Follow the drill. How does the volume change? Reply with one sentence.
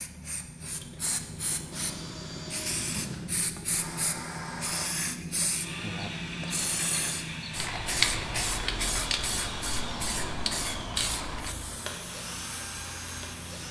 The volume of the drill stays about the same.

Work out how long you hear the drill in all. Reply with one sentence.
You can hear the drill for 12 seconds altogether.